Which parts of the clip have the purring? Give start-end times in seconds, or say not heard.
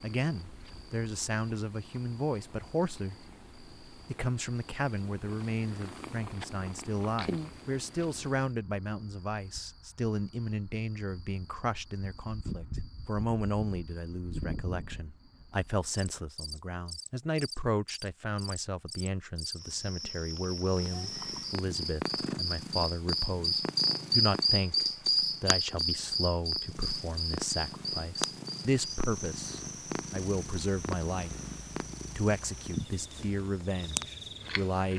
0.0-8.5, 20.8-34.9.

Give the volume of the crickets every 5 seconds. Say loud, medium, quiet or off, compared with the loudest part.
quiet, quiet, quiet, quiet, loud, loud, quiet.